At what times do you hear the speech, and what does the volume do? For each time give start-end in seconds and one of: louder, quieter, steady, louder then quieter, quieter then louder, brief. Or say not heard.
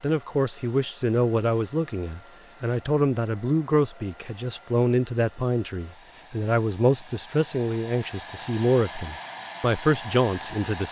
0.0-10.8 steady.